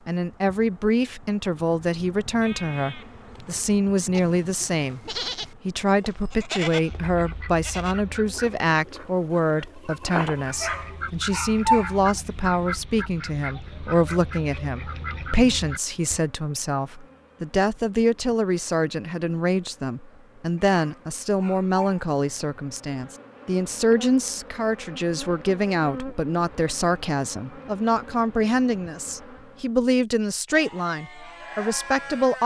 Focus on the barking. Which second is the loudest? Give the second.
12 s.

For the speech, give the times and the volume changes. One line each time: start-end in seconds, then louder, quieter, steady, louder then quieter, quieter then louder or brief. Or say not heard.
0.1-32.4 steady.